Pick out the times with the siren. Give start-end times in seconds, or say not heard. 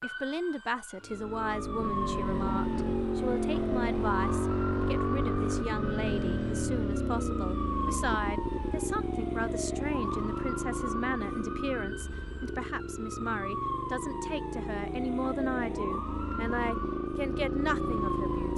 0.0-18.5.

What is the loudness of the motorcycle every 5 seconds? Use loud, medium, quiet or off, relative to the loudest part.
loud, loud, medium, loud.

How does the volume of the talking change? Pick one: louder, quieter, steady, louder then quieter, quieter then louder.
steady.